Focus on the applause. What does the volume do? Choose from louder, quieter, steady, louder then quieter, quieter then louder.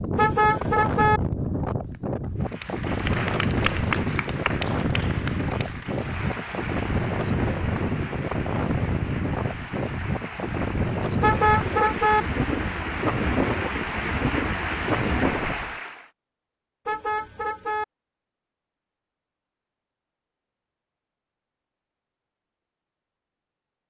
quieter then louder.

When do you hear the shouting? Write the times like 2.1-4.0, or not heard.
not heard.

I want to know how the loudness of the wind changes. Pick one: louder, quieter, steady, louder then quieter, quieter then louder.
steady.